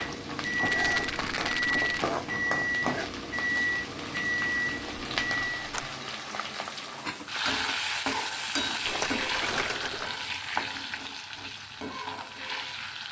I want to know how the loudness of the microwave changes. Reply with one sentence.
The volume of the microwave stays about the same.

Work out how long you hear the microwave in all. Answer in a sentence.
You can hear the microwave for 6 seconds altogether.